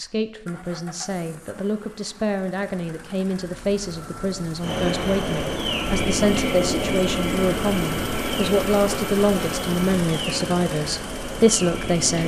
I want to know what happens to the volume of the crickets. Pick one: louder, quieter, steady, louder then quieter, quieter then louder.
quieter.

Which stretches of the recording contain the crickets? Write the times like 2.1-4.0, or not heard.
4.6-12.2.